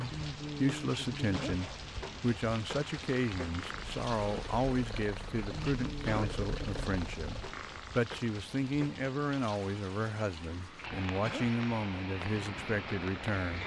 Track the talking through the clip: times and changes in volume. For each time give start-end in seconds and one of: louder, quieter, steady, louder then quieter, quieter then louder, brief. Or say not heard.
0.0-13.6 steady.